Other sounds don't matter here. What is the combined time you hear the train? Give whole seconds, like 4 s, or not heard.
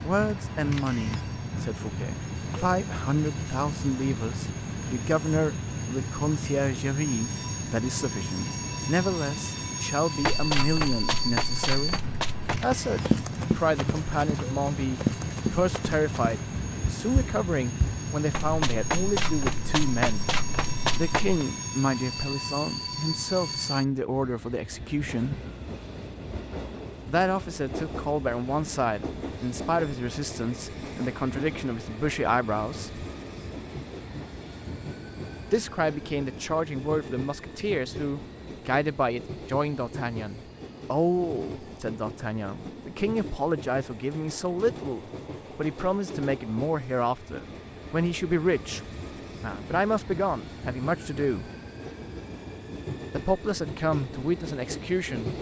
55 s.